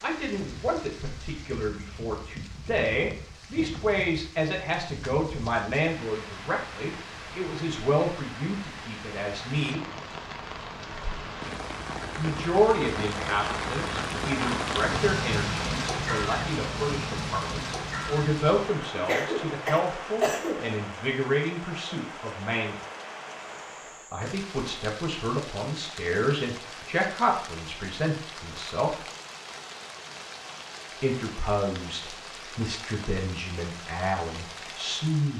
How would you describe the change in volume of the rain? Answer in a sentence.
The loudness of the rain goes up, then down.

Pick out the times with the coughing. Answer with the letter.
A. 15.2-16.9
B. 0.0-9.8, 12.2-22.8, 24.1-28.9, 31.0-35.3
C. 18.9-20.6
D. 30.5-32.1
C.